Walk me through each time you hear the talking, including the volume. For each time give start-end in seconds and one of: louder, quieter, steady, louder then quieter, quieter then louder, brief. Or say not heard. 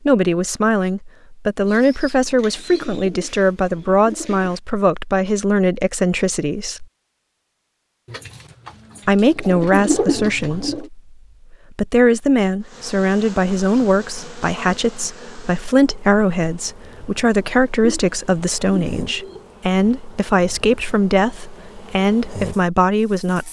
0.1-6.8 steady
9.1-23.4 steady.